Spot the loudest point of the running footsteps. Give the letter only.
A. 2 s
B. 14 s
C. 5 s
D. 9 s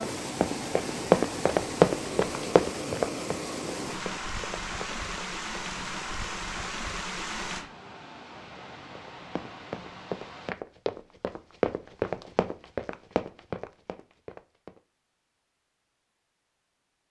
A.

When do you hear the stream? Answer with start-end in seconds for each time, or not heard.
0.0-10.6.